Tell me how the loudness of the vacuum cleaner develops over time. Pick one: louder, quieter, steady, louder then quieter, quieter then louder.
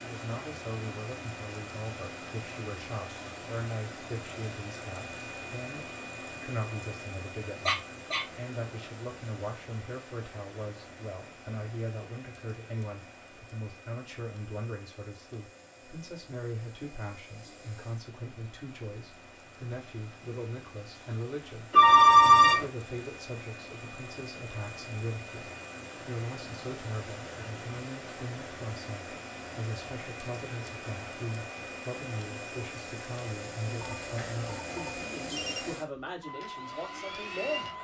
quieter then louder.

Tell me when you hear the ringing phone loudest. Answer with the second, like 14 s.
22 s.